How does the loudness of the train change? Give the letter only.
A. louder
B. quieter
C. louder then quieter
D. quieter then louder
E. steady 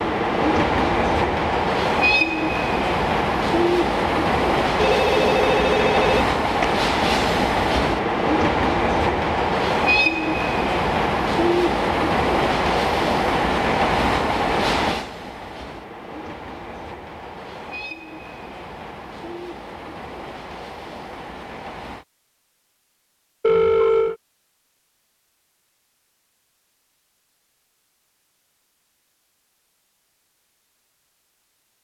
B.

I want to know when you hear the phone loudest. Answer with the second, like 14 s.
24 s.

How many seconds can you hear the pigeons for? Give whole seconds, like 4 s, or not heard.
not heard.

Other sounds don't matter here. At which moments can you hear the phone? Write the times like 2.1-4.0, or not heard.
4.7-6.7, 23.4-24.1.